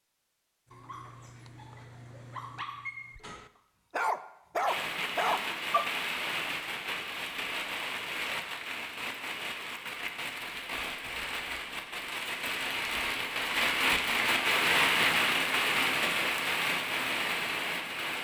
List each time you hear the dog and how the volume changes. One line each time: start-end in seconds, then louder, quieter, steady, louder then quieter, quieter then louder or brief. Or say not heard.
0.7-5.8 louder.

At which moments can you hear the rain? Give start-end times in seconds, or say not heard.
4.7-18.1.